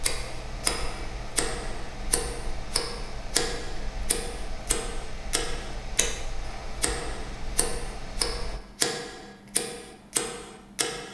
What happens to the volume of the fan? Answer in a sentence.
The loudness of the fan stays about the same.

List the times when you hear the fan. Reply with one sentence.
You can hear the fan from 0.0 to 8.6 s.